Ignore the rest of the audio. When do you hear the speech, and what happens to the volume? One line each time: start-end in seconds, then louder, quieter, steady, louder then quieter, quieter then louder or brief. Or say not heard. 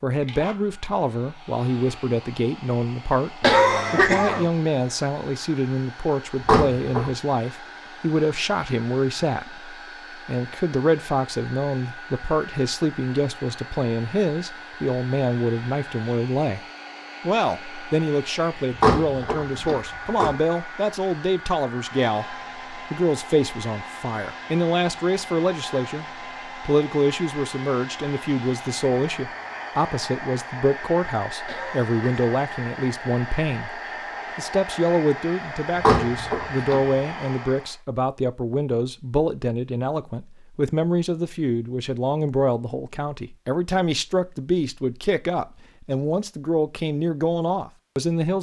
0.0-16.6 steady
17.2-48.3 steady.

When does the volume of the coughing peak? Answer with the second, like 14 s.
4 s.